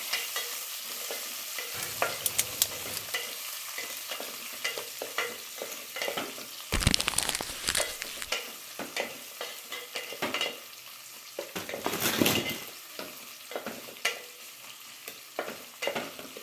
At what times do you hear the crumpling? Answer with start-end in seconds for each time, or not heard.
1.8-3.1, 6.7-8.2, 11.6-12.7.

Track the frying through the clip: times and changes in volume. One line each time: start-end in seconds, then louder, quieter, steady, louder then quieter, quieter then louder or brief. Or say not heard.
0.0-16.3 steady.